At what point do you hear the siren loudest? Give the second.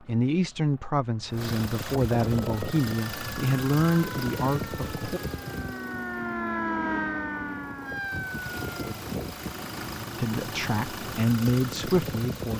7 s.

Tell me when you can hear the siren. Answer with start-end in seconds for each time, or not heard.
2.4-9.1.